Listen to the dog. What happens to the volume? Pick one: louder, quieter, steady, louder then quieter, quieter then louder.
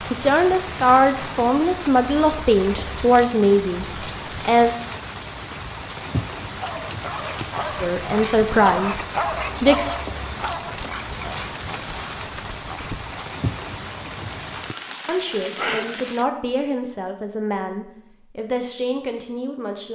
louder then quieter.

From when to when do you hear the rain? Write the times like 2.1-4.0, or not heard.
0.0-16.2.